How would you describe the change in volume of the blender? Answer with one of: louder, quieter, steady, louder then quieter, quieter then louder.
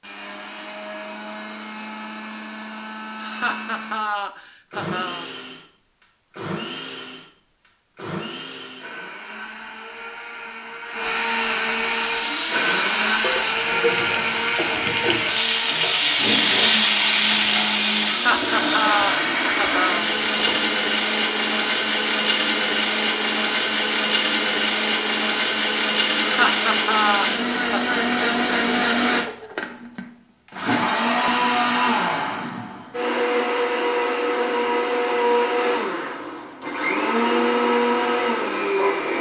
louder.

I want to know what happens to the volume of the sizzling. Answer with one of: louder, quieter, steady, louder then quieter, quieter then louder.
louder then quieter.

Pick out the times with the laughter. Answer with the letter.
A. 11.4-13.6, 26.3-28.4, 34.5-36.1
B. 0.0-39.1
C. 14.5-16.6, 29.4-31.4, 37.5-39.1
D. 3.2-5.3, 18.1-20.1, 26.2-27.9
D.